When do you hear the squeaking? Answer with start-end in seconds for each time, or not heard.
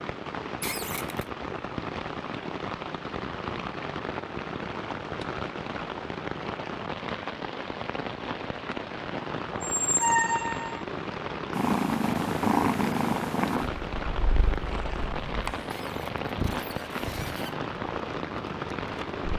0.6-1.2, 9.5-10.8, 15.7-17.6.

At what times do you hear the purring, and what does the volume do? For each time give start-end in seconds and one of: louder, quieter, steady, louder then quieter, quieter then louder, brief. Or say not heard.
11.6-19.3 quieter.